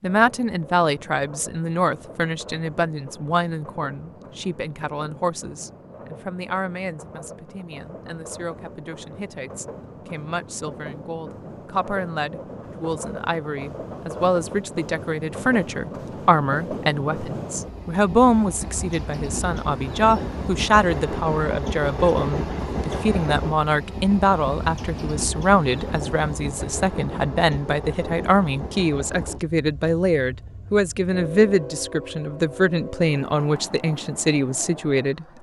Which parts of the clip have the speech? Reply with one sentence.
The speech can be heard from 0.0 to 35.3 s.